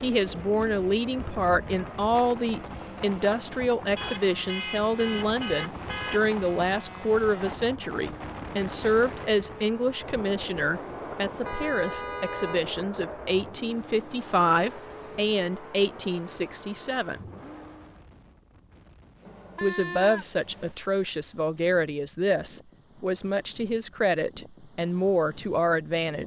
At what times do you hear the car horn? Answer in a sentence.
You can hear the car horn from 4.0 to 6.2 s, from 11.4 to 12.6 s and from 19.2 to 20.8 s.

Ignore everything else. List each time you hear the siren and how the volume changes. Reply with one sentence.
You can't hear the siren here.